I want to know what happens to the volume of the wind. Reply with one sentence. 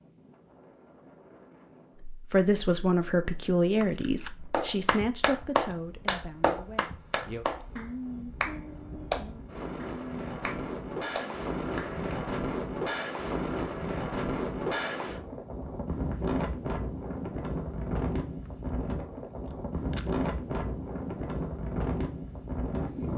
The loudness of the wind goes up.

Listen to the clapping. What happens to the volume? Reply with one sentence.
The volume of the clapping goes down.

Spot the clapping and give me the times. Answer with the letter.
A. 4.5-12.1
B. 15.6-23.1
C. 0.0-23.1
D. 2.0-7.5
A.